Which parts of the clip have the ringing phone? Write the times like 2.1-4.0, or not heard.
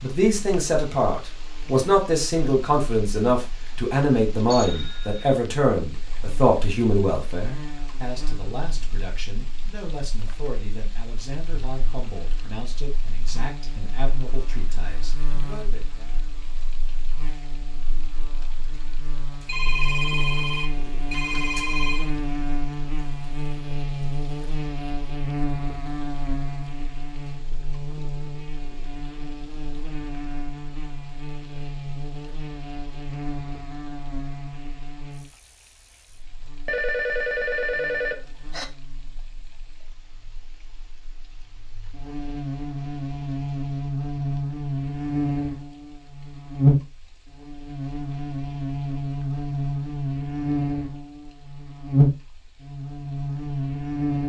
4.5-5.4, 19.4-22.1, 36.6-38.6.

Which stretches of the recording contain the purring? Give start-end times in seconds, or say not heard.
not heard.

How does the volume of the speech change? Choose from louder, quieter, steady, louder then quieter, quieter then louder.
quieter.